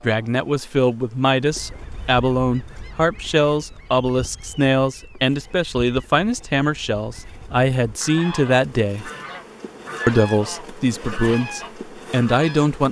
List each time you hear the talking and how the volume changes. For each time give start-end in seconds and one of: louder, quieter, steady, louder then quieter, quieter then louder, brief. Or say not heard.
0.0-9.1 steady
10.1-12.8 brief.